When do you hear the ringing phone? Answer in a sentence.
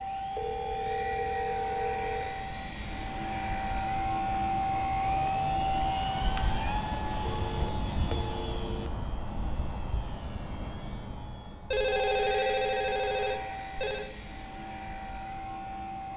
The ringing phone can be heard from 0.3 to 2.3 s, from 7.2 to 8.9 s and from 11.7 to 14.1 s.